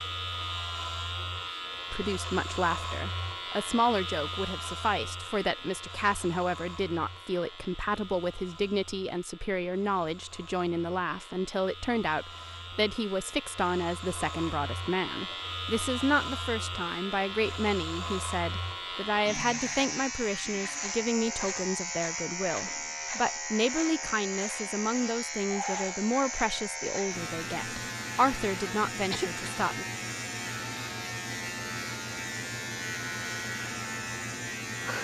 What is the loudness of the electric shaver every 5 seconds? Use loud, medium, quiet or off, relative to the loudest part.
loud, medium, medium, loud, loud, loud, loud.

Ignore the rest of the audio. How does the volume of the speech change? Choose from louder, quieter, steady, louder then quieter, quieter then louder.
steady.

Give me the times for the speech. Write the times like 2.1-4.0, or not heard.
1.9-29.9.